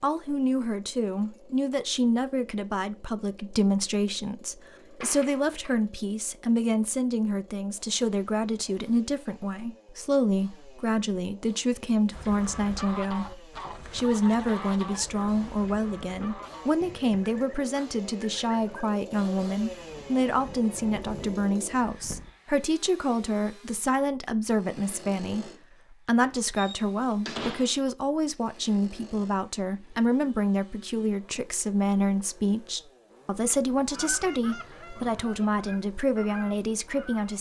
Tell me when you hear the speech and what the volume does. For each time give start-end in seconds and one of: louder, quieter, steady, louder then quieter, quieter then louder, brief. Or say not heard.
0.0-37.3 steady.